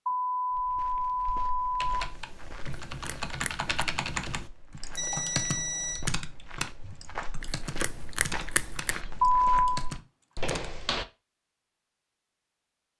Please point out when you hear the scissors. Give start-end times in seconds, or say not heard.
2.9-3.7, 7.4-9.0.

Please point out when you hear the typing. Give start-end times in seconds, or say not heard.
1.8-10.7.